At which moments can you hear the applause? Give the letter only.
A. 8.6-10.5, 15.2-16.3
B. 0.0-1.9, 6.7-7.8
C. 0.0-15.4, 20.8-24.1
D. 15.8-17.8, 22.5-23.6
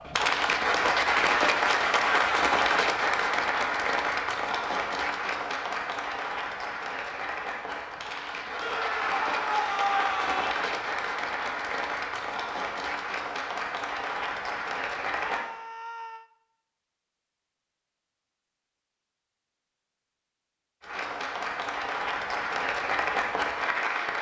C.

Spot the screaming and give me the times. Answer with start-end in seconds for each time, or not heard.
8.6-10.5, 15.2-16.3.